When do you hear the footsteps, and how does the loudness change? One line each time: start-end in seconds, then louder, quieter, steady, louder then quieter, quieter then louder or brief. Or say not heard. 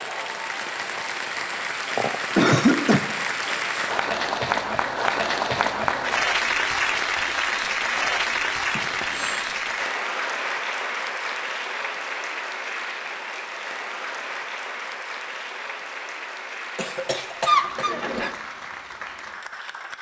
not heard.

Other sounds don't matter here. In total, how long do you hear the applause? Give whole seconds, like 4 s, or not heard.
20 s.